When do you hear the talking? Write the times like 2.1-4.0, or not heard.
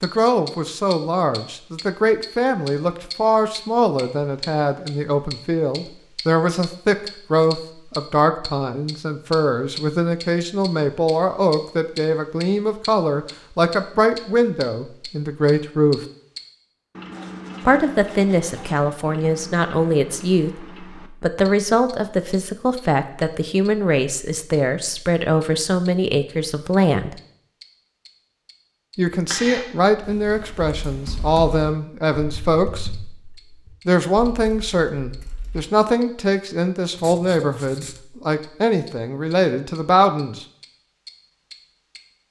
0.0-16.0, 17.6-27.1, 28.9-32.9, 33.9-40.5.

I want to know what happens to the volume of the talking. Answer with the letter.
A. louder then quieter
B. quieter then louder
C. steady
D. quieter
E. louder
C.